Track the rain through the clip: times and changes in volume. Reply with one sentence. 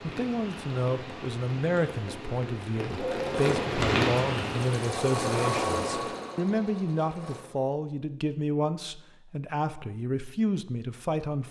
You can hear the rain from 0.0 to 6.1 s, getting louder then quieter.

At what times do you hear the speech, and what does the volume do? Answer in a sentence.
The speech can be heard from 0.0 to 11.4 s, at a steady volume.